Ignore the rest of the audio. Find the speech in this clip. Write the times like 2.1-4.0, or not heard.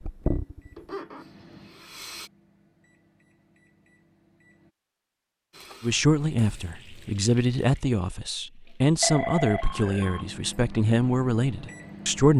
5.8-12.3.